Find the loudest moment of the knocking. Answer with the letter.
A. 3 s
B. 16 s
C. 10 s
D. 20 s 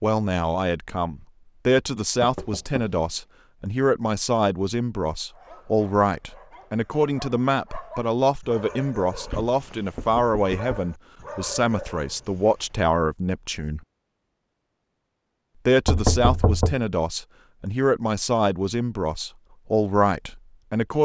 B.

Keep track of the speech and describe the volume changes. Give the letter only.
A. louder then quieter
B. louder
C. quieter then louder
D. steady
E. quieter
D.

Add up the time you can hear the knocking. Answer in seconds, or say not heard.
3 s.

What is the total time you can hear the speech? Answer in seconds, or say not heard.
19 s.